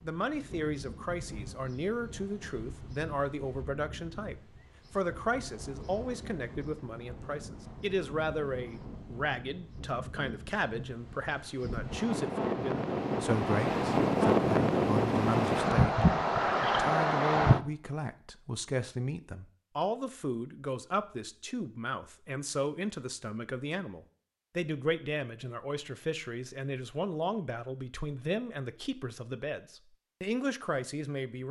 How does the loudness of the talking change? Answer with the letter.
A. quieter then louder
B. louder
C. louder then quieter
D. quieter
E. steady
E.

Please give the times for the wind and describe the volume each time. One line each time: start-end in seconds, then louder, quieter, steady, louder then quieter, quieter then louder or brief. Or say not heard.
0.0-17.6 louder.